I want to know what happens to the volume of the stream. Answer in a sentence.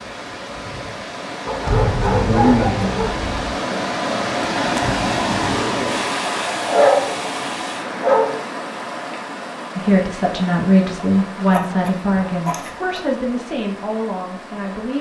The loudness of the stream goes up, then down.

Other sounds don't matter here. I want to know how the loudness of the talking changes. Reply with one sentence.
The volume of the talking goes down.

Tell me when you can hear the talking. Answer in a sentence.
The talking can be heard from 9.8 to 14.9 s.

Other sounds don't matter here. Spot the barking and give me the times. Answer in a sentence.
The barking can be heard from 1.4 to 3.5 s, from 6.7 to 8.4 s and from 11.5 to 13.0 s.